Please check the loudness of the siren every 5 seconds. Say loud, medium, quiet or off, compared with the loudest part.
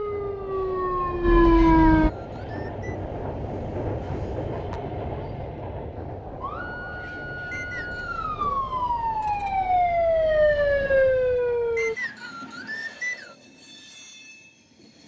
loud, medium, loud.